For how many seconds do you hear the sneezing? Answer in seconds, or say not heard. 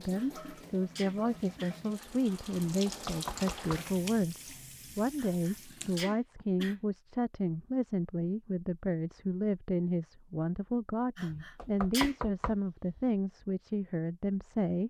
4 s.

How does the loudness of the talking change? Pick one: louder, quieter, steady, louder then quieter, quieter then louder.
steady.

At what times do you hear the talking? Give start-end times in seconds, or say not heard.
0.0-14.8.